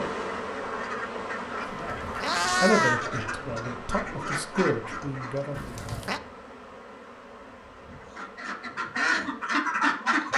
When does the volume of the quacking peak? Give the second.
10 s.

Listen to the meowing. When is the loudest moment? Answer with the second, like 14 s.
3 s.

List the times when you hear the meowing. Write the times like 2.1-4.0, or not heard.
1.6-3.0, 5.5-6.2.